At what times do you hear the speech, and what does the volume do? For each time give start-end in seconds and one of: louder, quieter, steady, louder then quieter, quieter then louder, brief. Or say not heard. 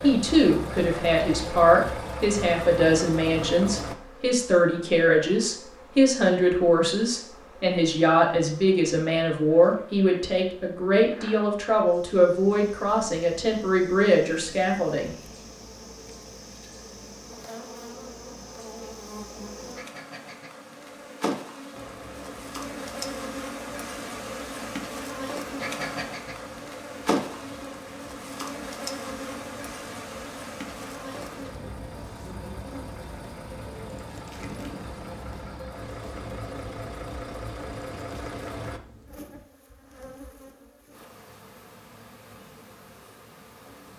0.0-15.1 steady.